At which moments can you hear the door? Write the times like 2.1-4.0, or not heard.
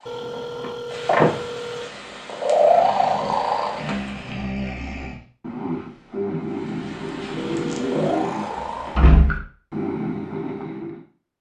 0.6-1.4, 8.5-9.4.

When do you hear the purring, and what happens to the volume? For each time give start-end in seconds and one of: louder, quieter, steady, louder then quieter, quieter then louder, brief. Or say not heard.
0.0-4.3 louder then quieter
6.5-9.2 brief.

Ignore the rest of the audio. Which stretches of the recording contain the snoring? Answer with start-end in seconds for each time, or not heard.
2.5-11.0.